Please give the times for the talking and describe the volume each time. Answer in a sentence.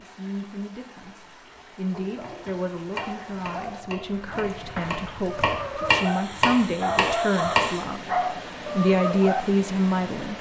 The talking can be heard from 0.0 to 10.3 s, getting louder.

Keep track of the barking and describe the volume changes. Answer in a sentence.
The loudness of the barking goes up.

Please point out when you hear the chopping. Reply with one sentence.
The chopping can be heard from 2.2 to 7.8 s.